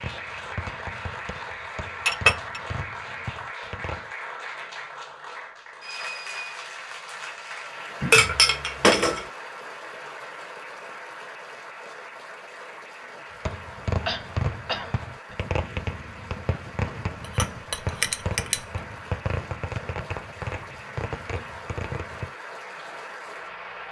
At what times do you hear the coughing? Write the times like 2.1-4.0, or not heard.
8.0-8.4, 14.1-15.3.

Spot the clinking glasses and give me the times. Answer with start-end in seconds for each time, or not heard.
2.0-2.6, 8.1-9.2, 17.4-18.6.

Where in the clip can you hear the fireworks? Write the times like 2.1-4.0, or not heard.
0.0-4.2, 13.4-22.3.